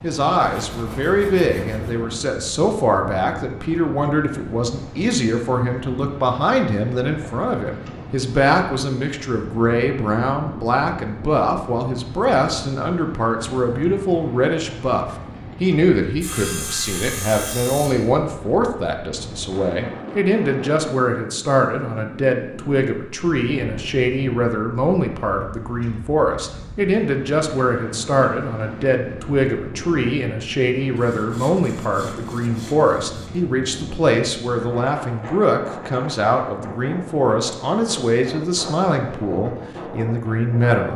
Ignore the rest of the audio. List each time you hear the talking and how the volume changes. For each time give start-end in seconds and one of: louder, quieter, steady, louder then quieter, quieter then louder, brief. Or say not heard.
0.0-40.9 steady.